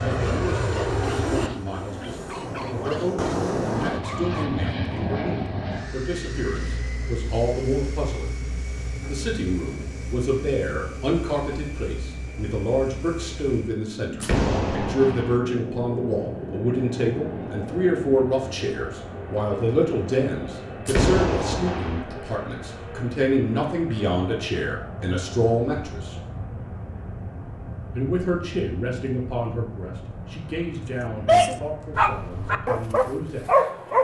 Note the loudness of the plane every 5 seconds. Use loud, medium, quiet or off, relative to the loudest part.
loud, medium, medium, medium, medium, medium, quiet.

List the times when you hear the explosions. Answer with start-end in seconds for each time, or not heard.
14.2-15.4, 20.9-22.1.